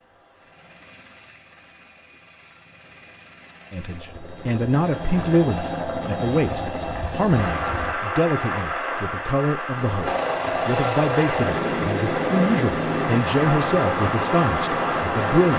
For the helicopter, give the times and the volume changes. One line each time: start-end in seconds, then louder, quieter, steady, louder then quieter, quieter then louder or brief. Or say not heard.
0.0-8.0 louder
10.1-15.2 quieter.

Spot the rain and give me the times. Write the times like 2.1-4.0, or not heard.
7.3-15.5.